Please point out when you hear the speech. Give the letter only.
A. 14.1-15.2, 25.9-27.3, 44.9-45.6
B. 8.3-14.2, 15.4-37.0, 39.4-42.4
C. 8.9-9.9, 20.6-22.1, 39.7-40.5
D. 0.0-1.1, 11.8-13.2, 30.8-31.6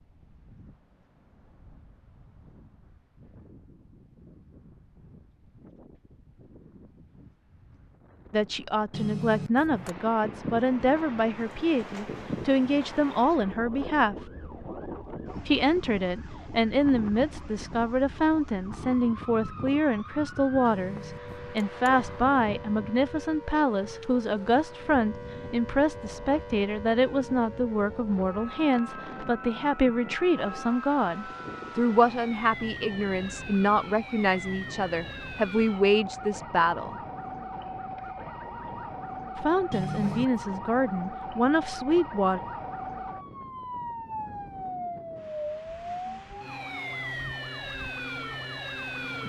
B.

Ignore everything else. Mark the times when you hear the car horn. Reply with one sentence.
The car horn can be heard from 8.9 to 9.9 s, from 20.6 to 22.1 s and from 39.7 to 40.5 s.